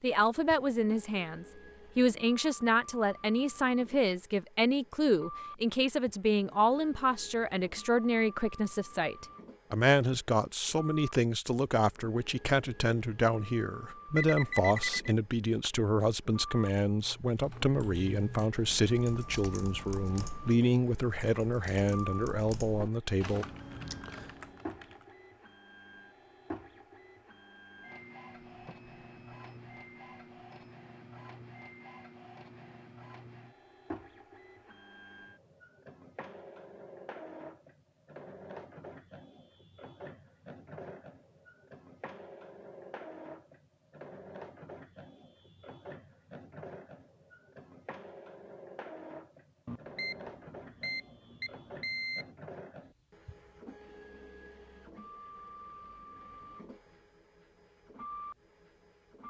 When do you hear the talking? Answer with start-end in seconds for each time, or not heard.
0.0-23.4.